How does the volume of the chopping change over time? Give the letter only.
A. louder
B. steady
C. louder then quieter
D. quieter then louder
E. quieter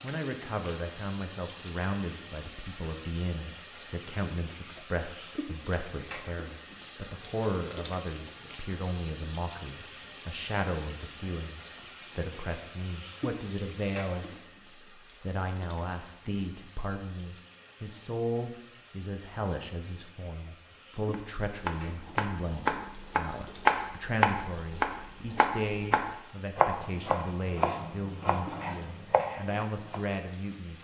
C.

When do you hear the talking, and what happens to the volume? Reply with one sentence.
The talking can be heard from 0.0 to 14.3 s, at a steady volume; and from 15.2 to 30.8 s, at a steady volume.